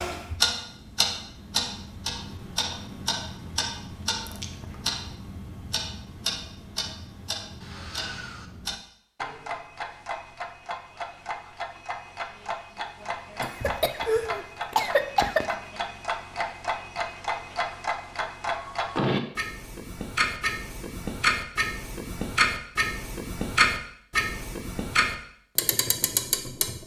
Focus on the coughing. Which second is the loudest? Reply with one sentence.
The volume of the coughing peaks at 15 seconds.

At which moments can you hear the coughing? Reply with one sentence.
The coughing can be heard from 13.4 to 15.6 s.